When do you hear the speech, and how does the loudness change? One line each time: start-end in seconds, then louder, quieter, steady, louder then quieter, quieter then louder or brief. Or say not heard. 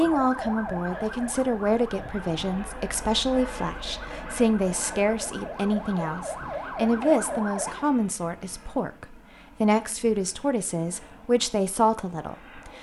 0.0-12.7 steady.